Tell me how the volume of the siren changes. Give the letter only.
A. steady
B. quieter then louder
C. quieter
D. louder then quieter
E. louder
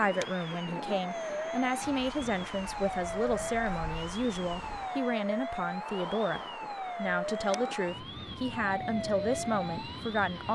A.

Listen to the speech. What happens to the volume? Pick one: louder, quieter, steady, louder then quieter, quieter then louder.
steady.